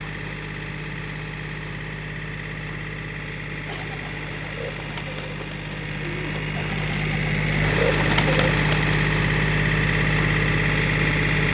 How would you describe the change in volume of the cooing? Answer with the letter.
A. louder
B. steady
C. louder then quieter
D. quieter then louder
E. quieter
A.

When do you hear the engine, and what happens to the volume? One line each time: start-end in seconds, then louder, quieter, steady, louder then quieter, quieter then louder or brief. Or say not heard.
0.0-11.4 louder.